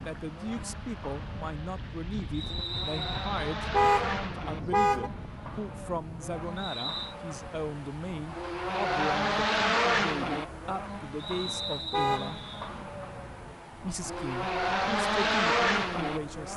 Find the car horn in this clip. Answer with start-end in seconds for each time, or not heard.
3.7-5.1, 11.9-12.4.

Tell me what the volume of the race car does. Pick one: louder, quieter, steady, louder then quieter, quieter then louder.
louder.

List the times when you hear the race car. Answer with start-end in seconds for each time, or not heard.
0.0-16.5.